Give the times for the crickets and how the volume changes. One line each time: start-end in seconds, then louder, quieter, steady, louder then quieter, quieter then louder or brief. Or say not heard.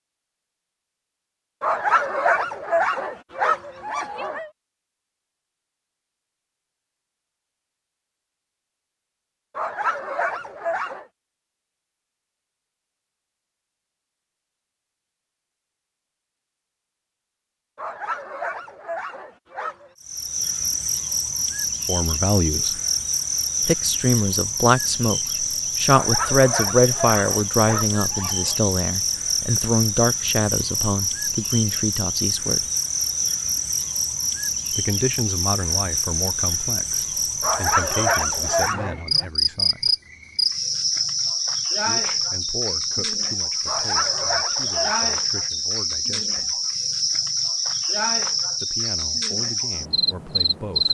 20.0-50.9 steady.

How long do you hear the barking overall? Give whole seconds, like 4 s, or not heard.
13 s.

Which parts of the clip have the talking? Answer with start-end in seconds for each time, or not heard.
21.9-22.8, 23.6-32.6, 34.7-39.9, 41.9-46.6, 48.6-50.9.